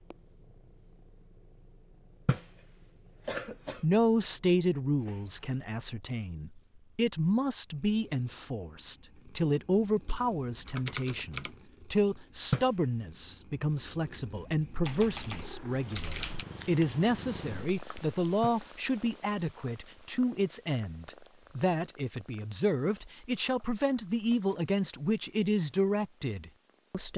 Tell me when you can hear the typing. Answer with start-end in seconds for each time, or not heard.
10.1-11.5, 14.8-16.4.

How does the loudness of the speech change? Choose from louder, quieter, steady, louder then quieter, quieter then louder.
steady.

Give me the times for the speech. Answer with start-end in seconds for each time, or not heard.
3.8-27.1.